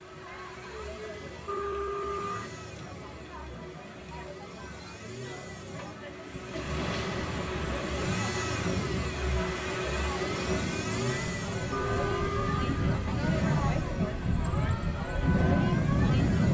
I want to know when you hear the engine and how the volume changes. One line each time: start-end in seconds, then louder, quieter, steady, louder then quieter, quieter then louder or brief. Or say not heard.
0.0-16.4 louder then quieter.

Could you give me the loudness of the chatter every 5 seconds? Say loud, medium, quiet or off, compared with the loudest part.
medium, medium, loud, loud.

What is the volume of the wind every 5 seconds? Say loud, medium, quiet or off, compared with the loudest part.
off, medium, medium, loud.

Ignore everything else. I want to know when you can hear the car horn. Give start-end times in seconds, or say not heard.
1.4-2.5, 11.7-13.2.